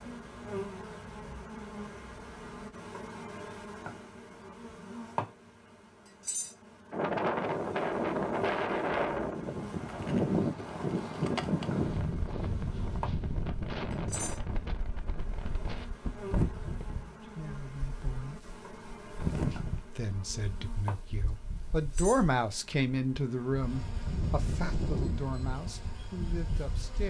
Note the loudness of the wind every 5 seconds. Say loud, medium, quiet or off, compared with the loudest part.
off, loud, loud, medium, medium, medium.